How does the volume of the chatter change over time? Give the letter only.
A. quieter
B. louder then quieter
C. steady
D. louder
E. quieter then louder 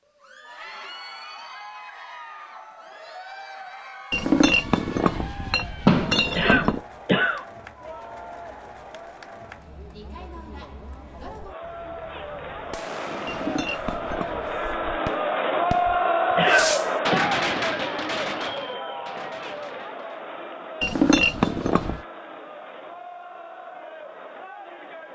B.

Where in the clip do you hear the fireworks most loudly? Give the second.
17 s.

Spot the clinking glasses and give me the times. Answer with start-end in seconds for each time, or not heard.
4.1-6.8, 13.2-14.6, 20.8-22.0.